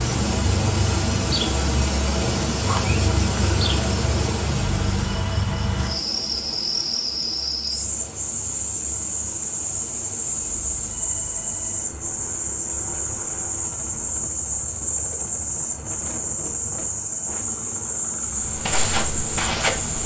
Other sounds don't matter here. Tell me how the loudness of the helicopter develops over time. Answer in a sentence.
The volume of the helicopter goes down.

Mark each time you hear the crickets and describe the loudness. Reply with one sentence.
The crickets can be heard from 0.0 to 20.0 s, at a steady volume.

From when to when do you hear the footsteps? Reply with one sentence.
The footsteps can be heard from 18.2 to 20.0 s.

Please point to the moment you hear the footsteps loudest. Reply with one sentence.
The volume of the footsteps peaks at 20 seconds.